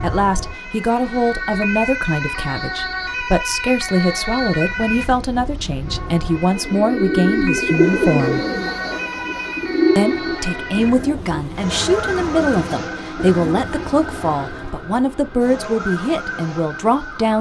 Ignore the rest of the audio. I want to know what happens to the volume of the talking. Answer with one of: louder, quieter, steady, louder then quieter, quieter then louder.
steady.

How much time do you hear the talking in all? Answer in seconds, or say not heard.
16 s.